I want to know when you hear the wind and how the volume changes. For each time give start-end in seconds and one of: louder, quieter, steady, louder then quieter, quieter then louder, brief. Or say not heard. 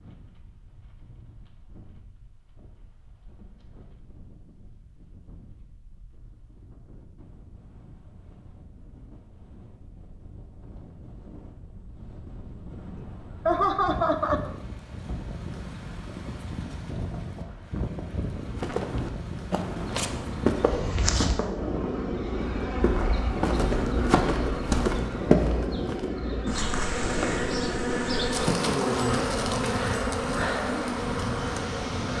0.0-32.1 louder.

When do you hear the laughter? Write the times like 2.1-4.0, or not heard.
12.9-14.5.